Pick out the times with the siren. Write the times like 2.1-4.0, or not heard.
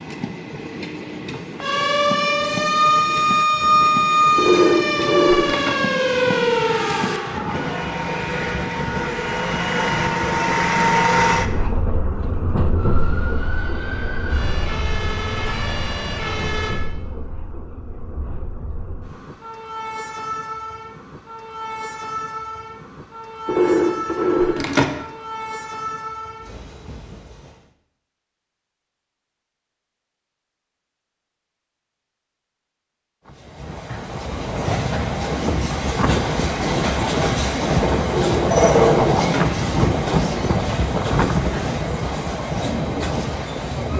1.6-7.6, 12.7-16.8.